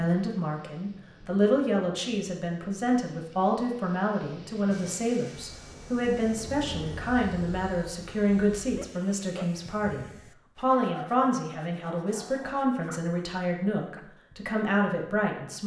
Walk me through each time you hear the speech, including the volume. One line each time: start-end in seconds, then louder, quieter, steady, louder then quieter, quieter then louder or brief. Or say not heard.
0.0-15.6 steady.